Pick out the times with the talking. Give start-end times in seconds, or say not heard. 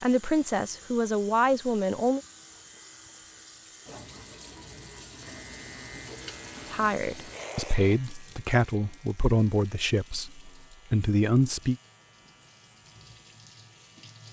0.0-2.2, 6.7-11.8.